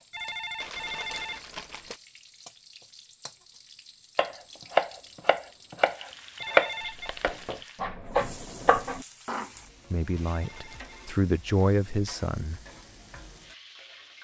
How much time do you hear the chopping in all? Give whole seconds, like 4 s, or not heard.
5 s.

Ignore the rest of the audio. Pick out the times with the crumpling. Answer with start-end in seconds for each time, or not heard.
0.6-2.0, 6.8-7.5, 10.2-11.0.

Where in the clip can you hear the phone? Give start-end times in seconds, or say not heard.
0.1-1.4, 6.3-7.2, 10.2-11.2.